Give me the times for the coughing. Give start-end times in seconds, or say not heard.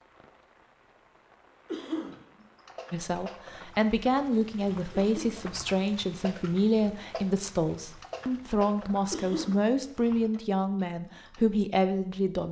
1.6-2.2, 5.0-5.5, 9.1-9.6.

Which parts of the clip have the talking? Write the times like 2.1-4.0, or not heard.
2.9-12.4.